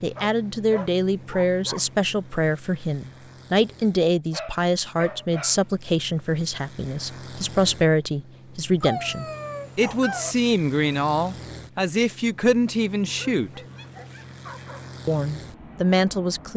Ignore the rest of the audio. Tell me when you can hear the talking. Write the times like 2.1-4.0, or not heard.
0.0-13.6, 15.1-16.5.